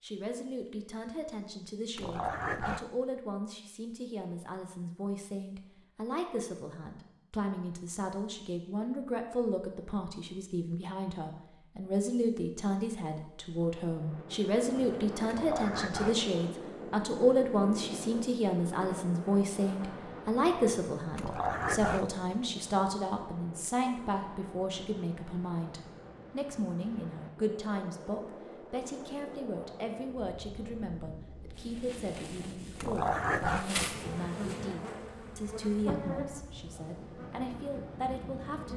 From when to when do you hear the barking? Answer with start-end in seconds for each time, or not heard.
1.9-2.9, 15.2-16.2, 21.1-22.1, 32.8-33.8.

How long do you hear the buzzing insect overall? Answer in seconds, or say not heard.
7 s.